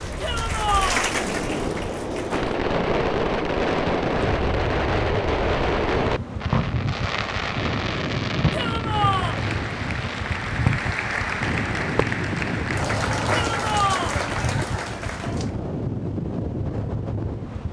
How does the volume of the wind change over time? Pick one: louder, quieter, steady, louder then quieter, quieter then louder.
steady.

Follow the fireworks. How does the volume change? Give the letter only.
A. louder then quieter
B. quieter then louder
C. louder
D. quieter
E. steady
D.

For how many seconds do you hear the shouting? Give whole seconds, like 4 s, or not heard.
3 s.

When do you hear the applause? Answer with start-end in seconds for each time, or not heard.
0.0-2.5, 8.8-15.6.